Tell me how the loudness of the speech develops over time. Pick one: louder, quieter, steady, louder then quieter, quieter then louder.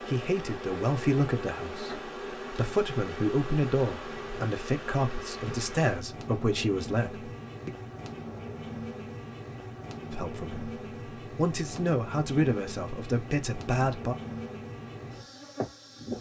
steady.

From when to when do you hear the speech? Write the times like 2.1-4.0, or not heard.
0.0-7.7, 10.1-14.2.